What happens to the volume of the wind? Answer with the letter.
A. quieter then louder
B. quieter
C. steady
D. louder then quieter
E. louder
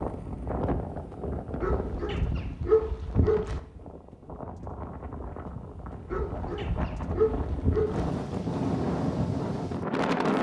A.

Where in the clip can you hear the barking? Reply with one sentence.
The barking can be heard from 1.6 to 3.6 s and from 6.1 to 8.1 s.